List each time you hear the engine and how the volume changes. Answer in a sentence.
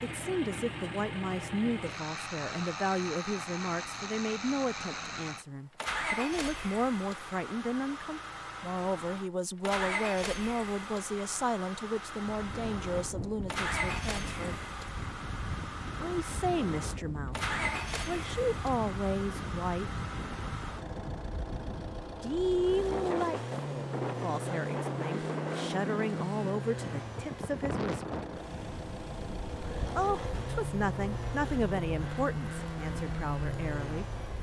You can hear the engine from 0.0 to 34.3 s, at a steady volume.